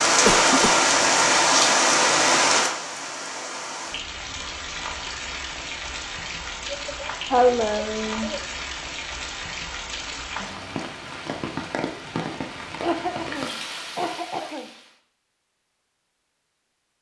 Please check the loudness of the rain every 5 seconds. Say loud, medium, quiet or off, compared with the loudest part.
loud, quiet, quiet, off.